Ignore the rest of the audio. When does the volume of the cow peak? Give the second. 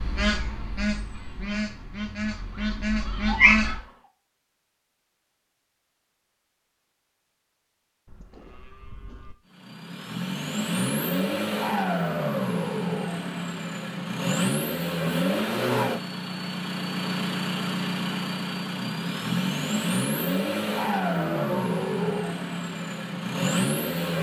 22 s.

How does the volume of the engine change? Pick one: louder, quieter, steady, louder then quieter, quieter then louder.
steady.